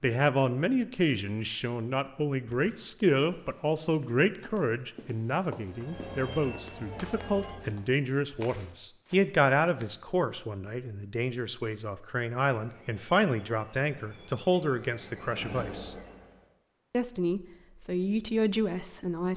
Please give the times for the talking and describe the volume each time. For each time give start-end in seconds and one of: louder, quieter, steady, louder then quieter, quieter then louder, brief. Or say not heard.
0.0-15.9 steady
16.9-19.3 brief.